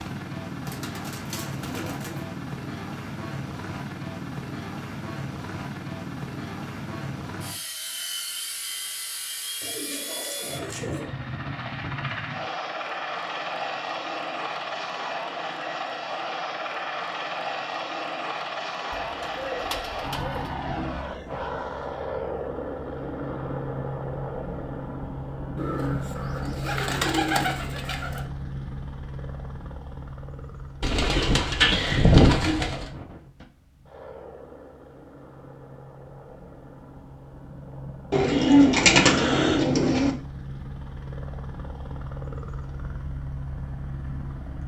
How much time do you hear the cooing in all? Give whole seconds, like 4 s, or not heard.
12 s.